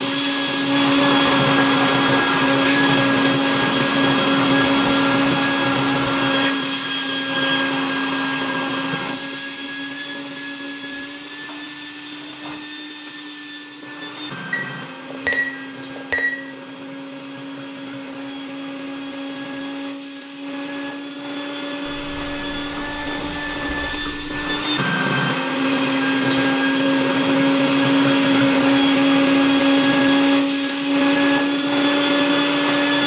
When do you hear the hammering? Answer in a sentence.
The hammering can't be heard in this clip.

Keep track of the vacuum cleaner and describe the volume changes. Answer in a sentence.
The loudness of the vacuum cleaner goes down, then up.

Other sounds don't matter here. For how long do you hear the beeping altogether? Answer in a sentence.
You can hear the beeping for 2 seconds altogether.